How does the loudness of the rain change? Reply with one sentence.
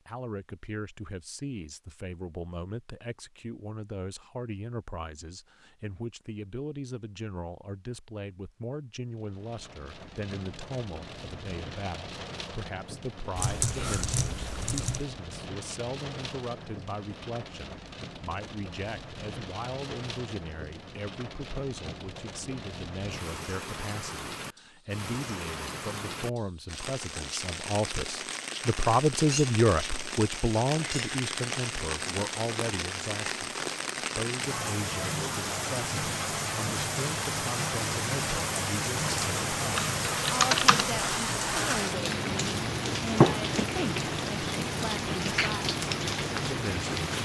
The volume of the rain goes up.